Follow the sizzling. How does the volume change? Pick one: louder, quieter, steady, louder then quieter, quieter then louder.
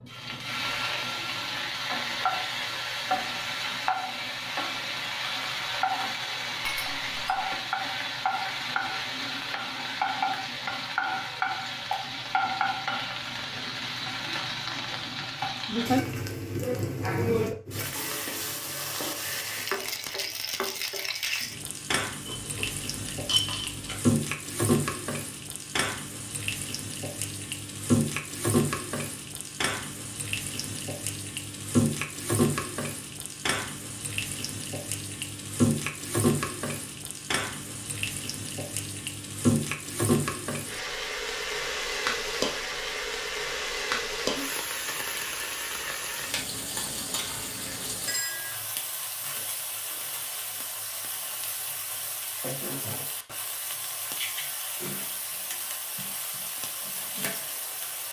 quieter.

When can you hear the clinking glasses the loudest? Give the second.
23 s.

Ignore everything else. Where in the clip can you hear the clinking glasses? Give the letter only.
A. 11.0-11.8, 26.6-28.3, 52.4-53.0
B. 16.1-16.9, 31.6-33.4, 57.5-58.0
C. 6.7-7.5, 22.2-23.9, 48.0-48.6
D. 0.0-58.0
C.